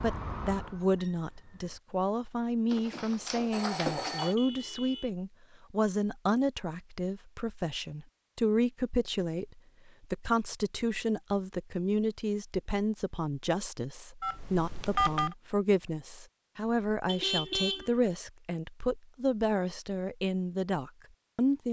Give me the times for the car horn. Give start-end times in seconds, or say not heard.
4.2-5.1, 17.1-18.1.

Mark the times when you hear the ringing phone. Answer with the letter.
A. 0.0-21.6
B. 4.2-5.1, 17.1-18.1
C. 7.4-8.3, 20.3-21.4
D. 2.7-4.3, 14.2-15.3
D.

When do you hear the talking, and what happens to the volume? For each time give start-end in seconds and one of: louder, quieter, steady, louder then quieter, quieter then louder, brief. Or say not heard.
0.0-21.6 steady.